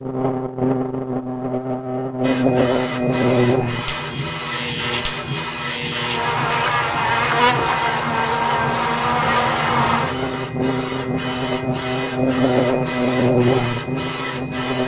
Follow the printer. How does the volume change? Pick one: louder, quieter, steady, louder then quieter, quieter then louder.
steady.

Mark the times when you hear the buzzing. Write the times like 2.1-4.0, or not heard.
0.0-14.8.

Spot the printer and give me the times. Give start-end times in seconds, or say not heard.
2.2-14.8.